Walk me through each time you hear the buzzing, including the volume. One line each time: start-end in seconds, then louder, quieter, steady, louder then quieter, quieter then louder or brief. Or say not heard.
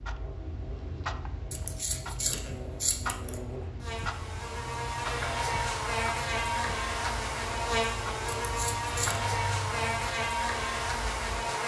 0.0-11.6 louder.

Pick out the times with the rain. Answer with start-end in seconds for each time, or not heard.
not heard.